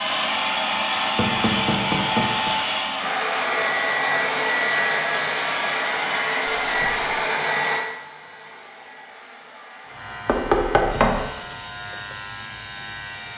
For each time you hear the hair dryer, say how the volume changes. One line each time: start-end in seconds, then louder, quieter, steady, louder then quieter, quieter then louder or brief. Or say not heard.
0.0-13.3 quieter.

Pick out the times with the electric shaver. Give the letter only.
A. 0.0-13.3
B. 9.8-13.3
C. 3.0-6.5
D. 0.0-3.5
B.